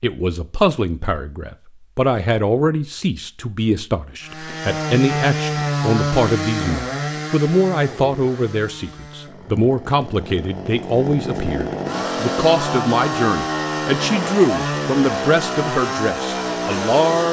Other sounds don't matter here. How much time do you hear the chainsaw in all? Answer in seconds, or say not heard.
13 s.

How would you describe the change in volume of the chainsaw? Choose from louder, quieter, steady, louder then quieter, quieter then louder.
quieter then louder.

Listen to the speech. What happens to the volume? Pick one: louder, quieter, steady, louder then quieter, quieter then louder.
steady.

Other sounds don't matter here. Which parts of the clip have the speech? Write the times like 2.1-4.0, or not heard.
0.0-17.2.